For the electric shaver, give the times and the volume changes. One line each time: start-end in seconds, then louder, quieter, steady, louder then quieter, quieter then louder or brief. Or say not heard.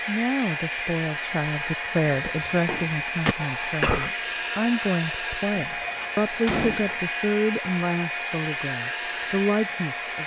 not heard.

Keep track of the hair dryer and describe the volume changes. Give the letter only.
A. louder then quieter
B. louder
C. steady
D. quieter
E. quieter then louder
C.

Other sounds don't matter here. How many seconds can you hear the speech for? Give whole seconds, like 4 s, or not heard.
10 s.